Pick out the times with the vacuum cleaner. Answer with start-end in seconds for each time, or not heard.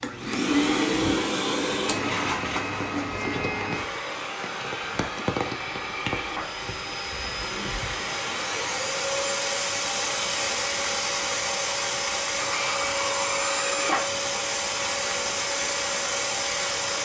0.0-17.0.